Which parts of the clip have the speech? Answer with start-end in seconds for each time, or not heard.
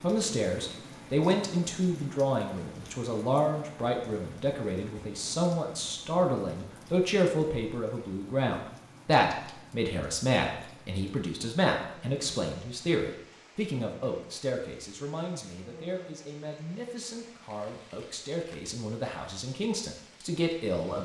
0.0-21.0.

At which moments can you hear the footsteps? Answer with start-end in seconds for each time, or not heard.
not heard.